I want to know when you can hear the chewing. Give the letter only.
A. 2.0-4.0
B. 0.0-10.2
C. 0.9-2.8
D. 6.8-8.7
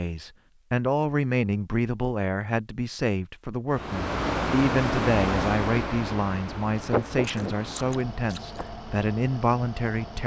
D.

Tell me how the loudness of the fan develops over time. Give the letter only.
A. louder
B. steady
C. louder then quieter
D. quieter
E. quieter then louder
D.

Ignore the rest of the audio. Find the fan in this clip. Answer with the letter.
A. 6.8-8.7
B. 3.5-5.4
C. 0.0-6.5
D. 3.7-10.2
D.